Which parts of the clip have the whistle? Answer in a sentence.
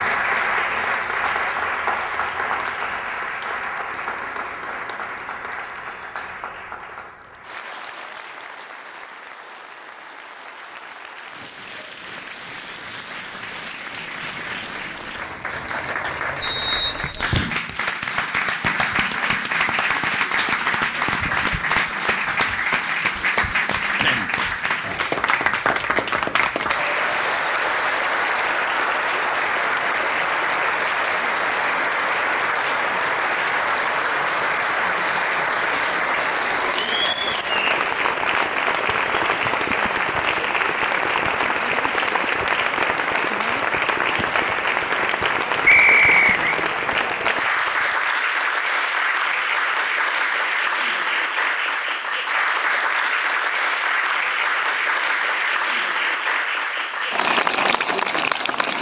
The whistle can be heard from 16.4 to 17.5 s and from 45.6 to 46.4 s.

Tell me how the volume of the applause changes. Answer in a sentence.
The volume of the applause goes up.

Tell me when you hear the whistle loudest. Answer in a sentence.
The volume of the whistle peaks at 46 seconds.